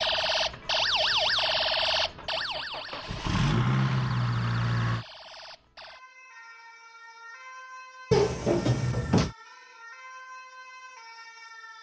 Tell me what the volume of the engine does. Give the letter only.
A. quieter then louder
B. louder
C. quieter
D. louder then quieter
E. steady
B.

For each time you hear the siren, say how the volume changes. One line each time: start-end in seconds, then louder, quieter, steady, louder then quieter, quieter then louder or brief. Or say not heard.
0.0-11.7 quieter.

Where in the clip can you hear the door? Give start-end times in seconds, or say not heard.
8.1-9.3.